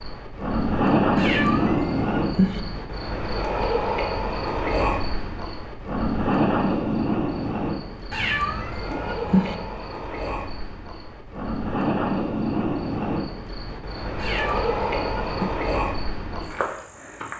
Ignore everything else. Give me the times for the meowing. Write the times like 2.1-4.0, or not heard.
1.1-2.6, 8.1-9.6, 14.2-15.6.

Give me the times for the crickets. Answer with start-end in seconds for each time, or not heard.
0.0-17.3.